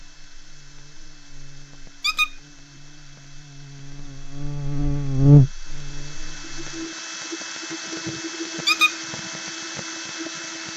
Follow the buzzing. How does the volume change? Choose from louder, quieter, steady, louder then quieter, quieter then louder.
louder.